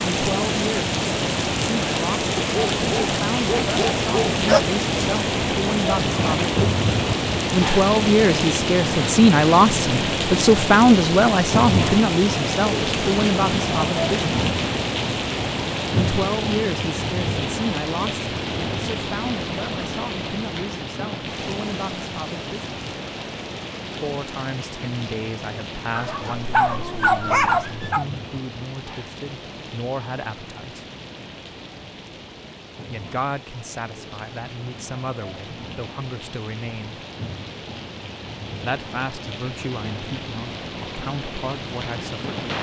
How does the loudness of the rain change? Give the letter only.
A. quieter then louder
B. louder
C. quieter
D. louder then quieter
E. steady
C.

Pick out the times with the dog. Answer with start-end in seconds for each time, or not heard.
2.4-4.7, 25.9-28.1.